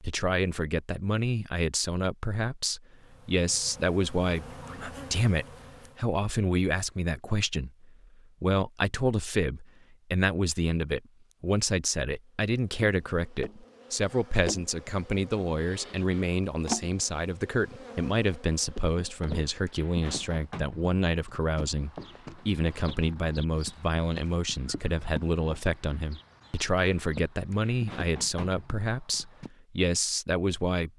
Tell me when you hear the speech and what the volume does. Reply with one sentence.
You can hear the speech from 0.0 to 30.9 s, at a steady volume.